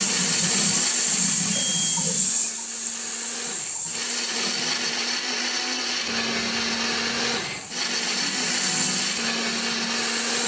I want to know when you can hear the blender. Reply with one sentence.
The blender can be heard from 0.0 to 10.4 s.